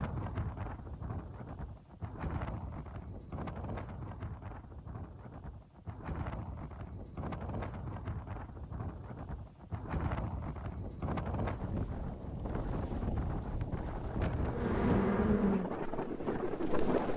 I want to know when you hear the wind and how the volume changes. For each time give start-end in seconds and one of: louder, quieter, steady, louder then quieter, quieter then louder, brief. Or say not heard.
0.0-17.1 louder.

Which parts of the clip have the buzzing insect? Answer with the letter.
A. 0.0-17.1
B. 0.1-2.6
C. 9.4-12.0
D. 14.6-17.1
D.